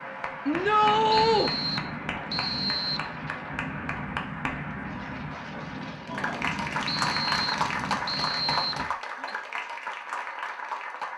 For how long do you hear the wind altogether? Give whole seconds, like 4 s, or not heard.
9 s.